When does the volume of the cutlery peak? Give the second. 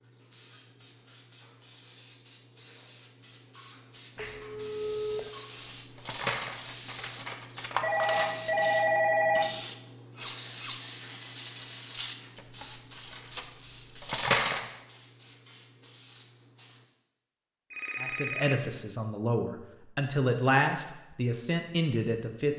14 s.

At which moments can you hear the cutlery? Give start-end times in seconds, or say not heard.
5.8-14.7.